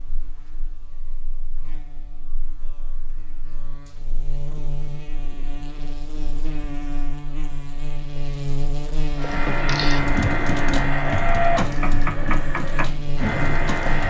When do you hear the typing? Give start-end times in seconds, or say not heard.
9.2-14.0.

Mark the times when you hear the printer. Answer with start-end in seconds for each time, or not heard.
9.2-14.0.